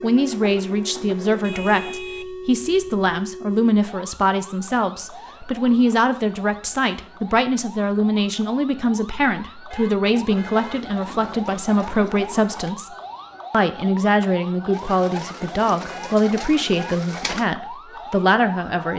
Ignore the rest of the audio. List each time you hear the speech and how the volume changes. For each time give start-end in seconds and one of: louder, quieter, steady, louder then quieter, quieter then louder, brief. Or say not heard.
0.0-18.9 steady.